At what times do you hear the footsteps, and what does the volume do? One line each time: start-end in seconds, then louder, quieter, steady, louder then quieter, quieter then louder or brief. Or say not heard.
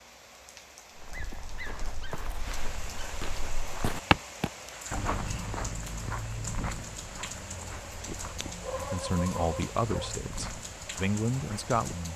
0.9-11.8 louder then quieter.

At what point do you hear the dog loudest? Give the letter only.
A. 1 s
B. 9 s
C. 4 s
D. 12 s
B.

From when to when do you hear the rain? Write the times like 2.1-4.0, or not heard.
0.0-12.1.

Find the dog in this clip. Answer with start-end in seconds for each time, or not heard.
1.1-3.1, 8.7-10.1.